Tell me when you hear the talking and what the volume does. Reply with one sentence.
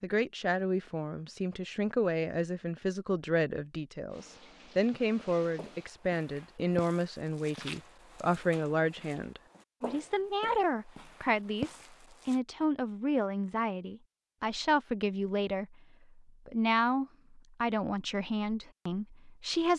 The talking can be heard from 0.0 to 19.7 s, at a steady volume.